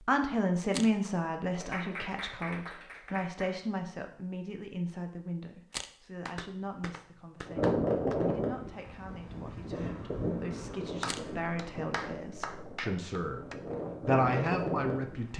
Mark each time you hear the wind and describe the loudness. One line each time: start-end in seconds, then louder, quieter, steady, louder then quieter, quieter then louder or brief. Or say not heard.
7.5-15.3 quieter then louder.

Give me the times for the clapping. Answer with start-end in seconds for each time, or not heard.
1.6-3.5, 6.2-8.2, 11.0-13.6.